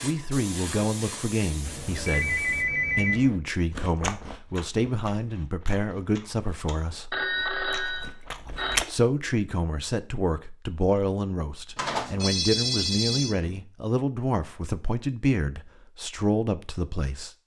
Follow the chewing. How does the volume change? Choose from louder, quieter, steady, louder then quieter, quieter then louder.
quieter then louder.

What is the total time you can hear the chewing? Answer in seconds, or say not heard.
5 s.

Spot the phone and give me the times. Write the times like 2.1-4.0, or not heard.
1.6-3.4, 7.1-8.9, 11.8-13.6.